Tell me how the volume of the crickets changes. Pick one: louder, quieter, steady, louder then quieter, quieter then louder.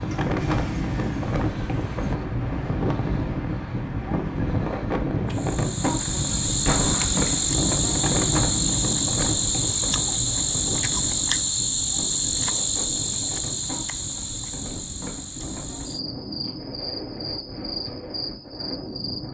quieter.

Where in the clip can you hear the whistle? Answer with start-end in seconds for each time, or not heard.
not heard.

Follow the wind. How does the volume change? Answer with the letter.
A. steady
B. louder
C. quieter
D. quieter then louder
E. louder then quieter
C.